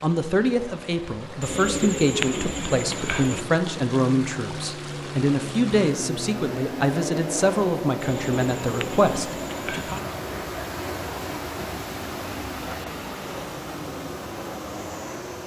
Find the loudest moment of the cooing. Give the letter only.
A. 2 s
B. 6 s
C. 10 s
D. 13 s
A.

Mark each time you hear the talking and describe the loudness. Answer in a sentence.
The talking can be heard from 0.0 to 10.1 s, at a steady volume.